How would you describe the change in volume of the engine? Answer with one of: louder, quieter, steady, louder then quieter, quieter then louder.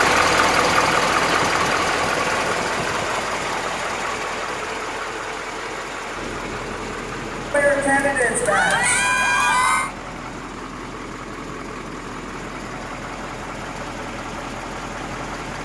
quieter.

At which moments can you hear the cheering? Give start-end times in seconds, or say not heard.
7.5-9.9.